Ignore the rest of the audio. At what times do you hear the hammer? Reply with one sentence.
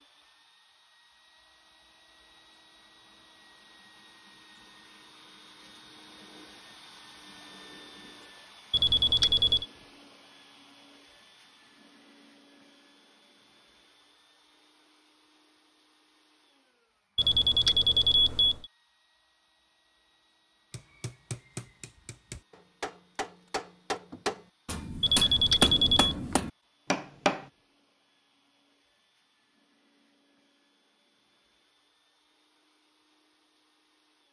The hammer can be heard from 20.7 to 27.4 s.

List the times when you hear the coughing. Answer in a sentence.
You can't hear the coughing here.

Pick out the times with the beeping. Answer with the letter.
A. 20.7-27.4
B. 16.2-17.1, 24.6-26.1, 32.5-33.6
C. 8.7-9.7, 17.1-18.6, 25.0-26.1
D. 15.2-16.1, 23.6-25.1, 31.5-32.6
C.